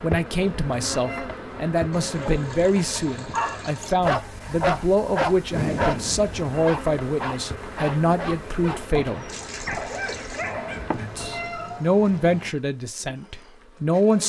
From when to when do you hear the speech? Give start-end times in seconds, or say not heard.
0.0-9.3, 10.9-14.2.